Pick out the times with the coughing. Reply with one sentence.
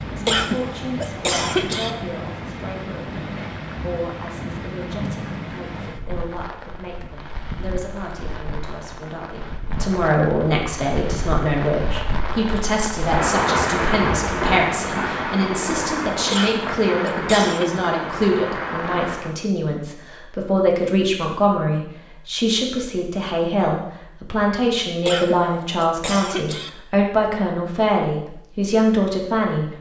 The coughing can be heard from 0.2 to 1.9 s, from 16.3 to 17.8 s and from 25.1 to 26.7 s.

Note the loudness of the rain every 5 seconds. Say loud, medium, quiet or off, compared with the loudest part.
medium, medium, loud, loud, off, off.